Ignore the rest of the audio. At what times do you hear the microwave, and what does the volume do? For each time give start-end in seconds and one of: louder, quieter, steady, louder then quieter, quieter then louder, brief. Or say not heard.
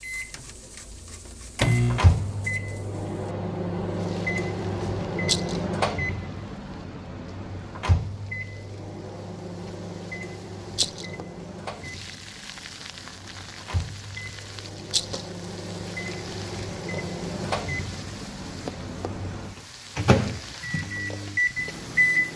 0.0-22.3 quieter then louder.